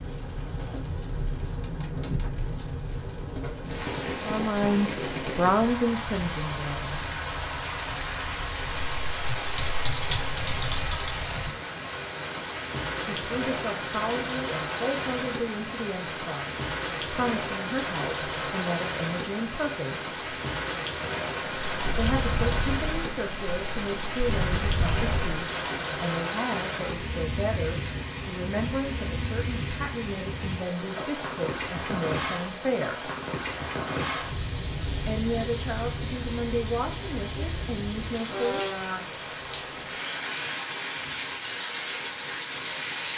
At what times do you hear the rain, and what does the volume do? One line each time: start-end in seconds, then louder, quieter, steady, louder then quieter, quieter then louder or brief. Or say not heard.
0.0-43.1 steady.